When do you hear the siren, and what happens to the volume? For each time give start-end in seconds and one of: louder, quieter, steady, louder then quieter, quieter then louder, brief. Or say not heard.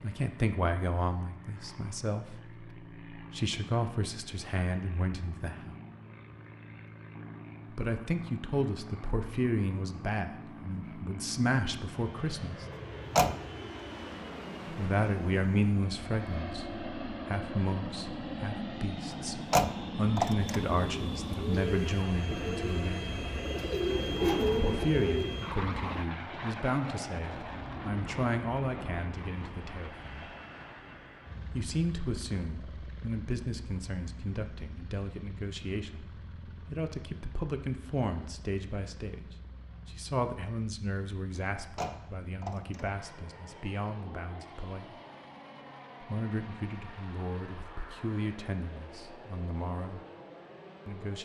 not heard.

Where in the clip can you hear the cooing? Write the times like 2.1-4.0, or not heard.
20.6-26.1.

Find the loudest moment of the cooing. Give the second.
24 s.